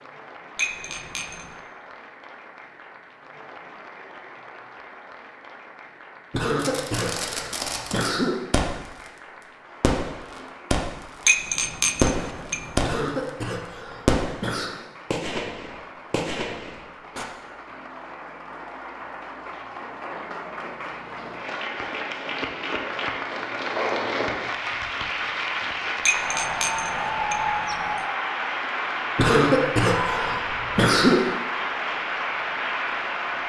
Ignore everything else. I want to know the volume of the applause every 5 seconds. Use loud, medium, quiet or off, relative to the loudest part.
quiet, quiet, quiet, quiet, loud, loud, loud.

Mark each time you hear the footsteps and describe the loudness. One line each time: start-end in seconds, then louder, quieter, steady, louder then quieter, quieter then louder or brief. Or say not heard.
not heard.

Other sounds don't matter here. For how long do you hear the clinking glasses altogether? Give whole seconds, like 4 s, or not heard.
4 s.